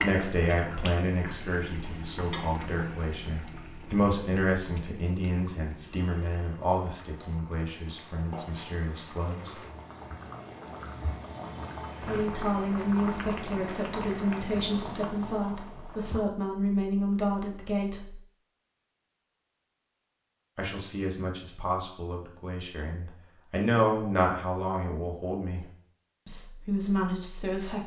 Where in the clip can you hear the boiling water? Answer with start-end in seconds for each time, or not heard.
0.0-16.2.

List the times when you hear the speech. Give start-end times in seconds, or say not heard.
0.0-9.6, 12.0-18.2, 20.6-25.6, 26.2-27.8.